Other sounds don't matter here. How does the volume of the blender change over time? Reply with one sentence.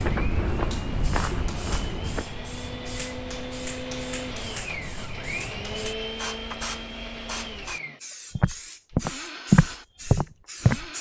The loudness of the blender goes up, then down.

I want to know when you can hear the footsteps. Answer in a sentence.
You can hear the footsteps from 0.0 to 2.2 s and from 8.3 to 10.8 s.